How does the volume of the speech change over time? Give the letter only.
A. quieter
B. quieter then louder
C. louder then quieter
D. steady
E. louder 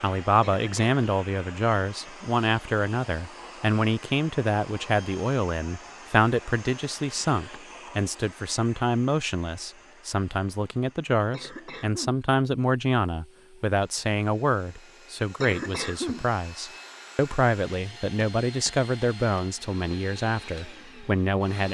D.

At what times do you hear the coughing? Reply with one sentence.
The coughing can be heard from 0.4 to 1.0 s, from 11.3 to 12.2 s and from 15.4 to 16.3 s.